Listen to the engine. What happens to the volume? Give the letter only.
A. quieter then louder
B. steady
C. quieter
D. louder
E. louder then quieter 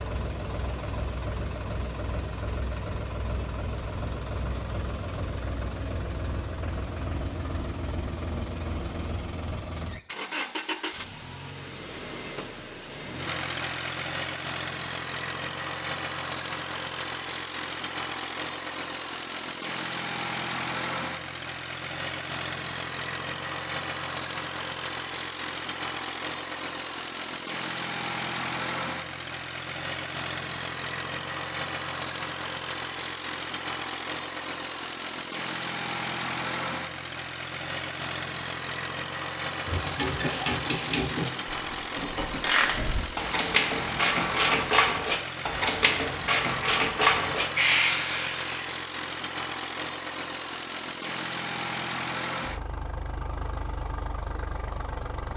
B.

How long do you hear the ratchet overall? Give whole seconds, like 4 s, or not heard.
9 s.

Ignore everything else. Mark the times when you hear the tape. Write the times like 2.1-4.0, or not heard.
not heard.